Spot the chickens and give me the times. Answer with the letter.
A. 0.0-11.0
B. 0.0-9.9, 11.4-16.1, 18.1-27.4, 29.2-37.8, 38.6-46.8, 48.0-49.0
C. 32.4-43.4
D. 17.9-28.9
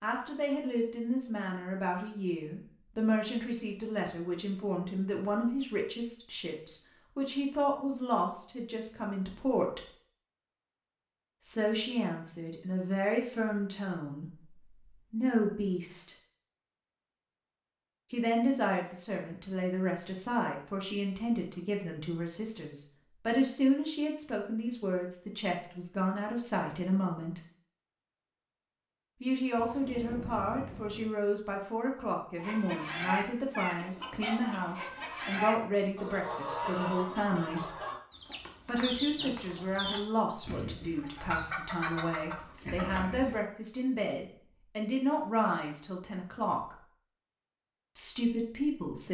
C.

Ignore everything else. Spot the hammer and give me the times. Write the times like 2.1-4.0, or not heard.
not heard.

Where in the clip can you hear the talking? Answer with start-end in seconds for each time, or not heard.
0.0-9.9, 11.4-16.1, 18.1-27.4, 29.2-37.8, 38.6-46.8, 48.0-49.0.